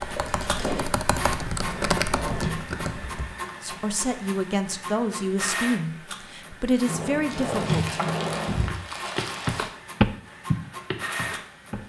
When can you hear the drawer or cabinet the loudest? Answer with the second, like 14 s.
8 s.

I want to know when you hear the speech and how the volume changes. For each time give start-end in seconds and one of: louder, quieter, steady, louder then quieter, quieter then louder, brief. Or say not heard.
3.6-8.0 steady.